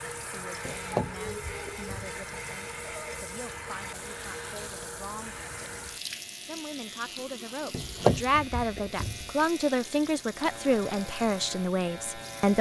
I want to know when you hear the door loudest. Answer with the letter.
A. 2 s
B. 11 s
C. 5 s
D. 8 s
D.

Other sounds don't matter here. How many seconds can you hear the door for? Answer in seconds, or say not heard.
3 s.